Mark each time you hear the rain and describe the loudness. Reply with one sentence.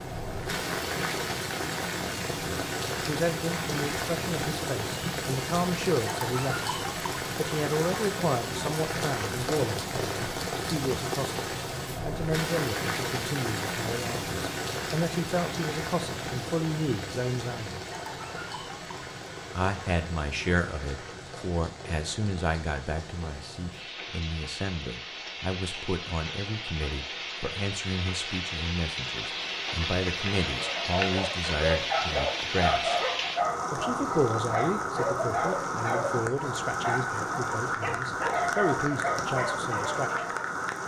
The rain can be heard from 0.0 to 40.8 s, getting quieter then louder.